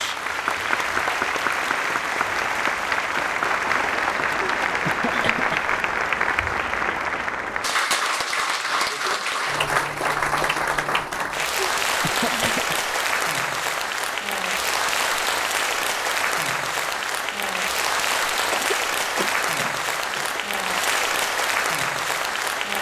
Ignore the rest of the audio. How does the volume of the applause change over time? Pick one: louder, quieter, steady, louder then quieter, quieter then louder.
steady.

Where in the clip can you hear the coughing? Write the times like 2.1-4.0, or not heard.
4.4-5.6, 11.6-12.9, 18.5-20.4.